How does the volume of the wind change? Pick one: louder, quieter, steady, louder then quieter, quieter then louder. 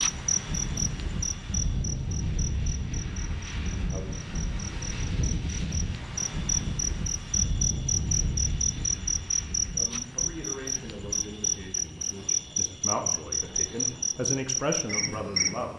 quieter.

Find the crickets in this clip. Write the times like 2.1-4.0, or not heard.
0.0-15.7.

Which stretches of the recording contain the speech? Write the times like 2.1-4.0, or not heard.
9.7-15.7.